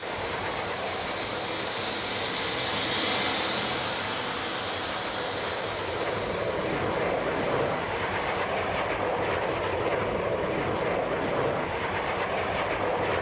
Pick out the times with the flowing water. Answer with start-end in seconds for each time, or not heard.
0.0-8.6.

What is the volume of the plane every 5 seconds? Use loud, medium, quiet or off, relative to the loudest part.
medium, loud, loud.